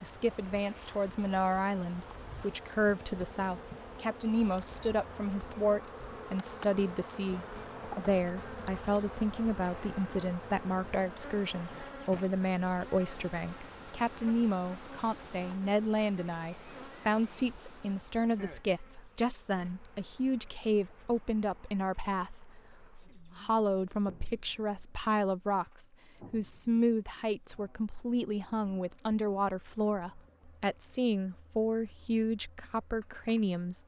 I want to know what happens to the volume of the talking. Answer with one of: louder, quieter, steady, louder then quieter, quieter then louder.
steady.